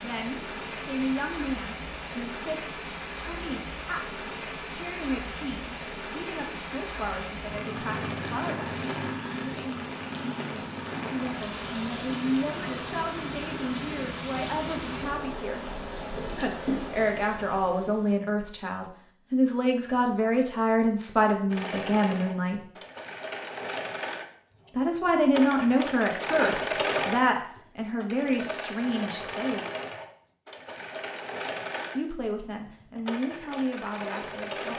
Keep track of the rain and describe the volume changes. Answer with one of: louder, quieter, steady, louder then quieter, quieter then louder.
steady.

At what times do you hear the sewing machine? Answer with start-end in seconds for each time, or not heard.
21.5-34.7.